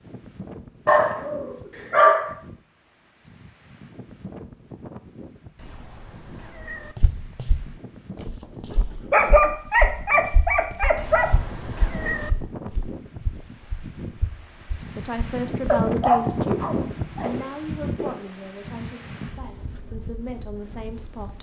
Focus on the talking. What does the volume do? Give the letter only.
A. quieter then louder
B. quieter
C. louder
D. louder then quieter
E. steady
A.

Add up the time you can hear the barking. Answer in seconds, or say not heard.
6 s.